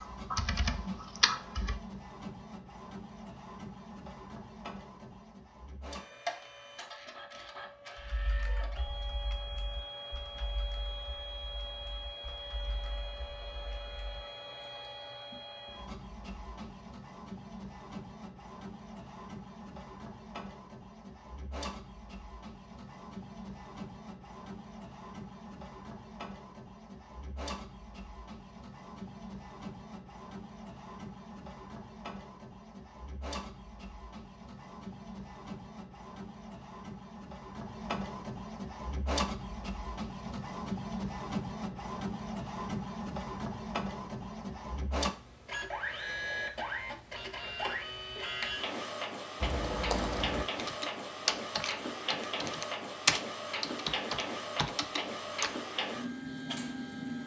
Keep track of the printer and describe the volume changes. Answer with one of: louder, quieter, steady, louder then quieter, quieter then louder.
louder.